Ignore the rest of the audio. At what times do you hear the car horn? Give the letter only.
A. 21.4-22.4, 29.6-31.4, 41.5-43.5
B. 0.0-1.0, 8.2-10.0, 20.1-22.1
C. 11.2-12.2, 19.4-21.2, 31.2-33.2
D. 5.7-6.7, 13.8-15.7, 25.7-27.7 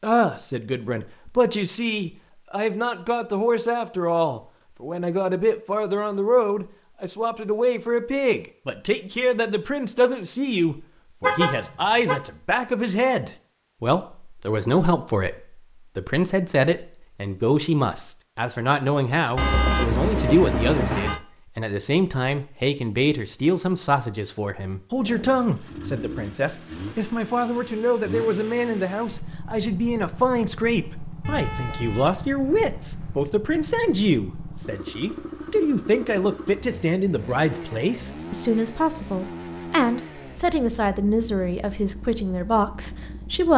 C.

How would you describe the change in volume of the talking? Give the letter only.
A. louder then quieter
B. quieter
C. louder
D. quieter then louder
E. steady
E.